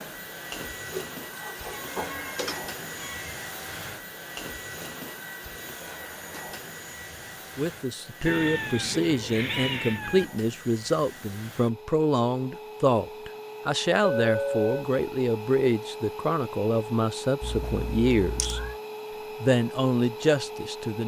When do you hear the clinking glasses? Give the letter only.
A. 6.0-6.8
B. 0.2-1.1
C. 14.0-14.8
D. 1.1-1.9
C.